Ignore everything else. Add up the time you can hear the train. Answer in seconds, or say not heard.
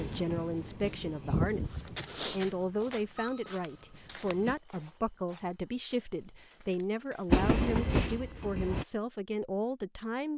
6 s.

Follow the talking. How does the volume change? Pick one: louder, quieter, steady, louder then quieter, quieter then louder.
steady.